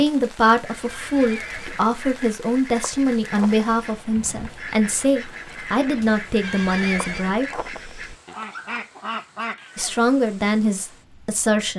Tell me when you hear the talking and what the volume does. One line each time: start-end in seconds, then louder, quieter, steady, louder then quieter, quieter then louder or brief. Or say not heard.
0.0-7.6 steady
9.8-11.7 brief.